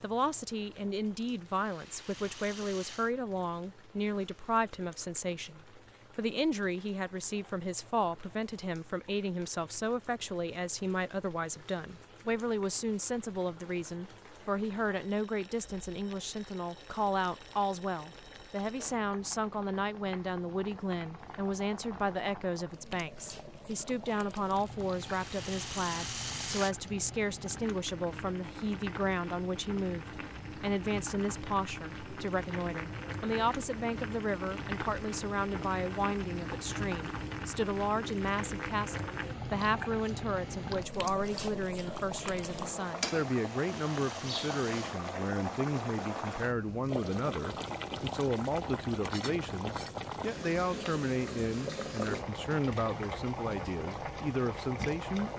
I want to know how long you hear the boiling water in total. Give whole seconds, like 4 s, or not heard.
55 s.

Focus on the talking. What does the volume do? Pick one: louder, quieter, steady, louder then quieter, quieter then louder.
steady.